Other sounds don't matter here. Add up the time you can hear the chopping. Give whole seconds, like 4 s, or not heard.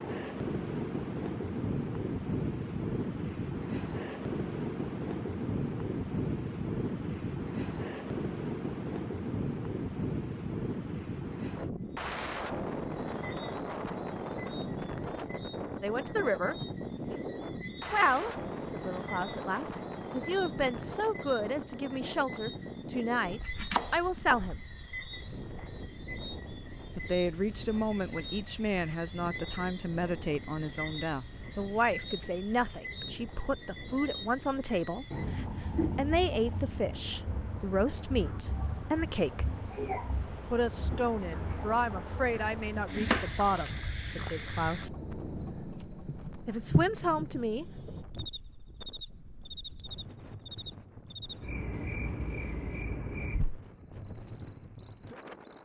3 s.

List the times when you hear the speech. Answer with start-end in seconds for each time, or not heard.
15.8-16.6, 17.9-24.6, 26.9-39.5, 40.5-44.9, 46.5-47.6.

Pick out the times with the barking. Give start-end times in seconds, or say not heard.
not heard.